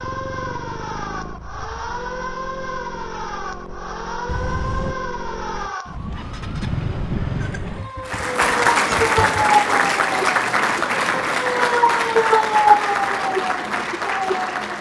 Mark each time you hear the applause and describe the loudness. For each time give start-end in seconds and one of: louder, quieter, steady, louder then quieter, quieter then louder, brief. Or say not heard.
8.1-14.7 quieter.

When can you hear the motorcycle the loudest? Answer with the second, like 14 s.
7 s.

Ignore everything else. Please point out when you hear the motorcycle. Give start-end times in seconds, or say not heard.
0.0-9.4.